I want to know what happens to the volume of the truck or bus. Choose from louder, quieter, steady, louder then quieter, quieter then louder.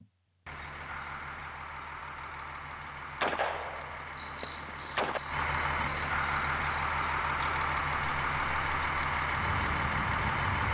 louder.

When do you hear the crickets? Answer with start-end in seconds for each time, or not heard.
4.2-10.7.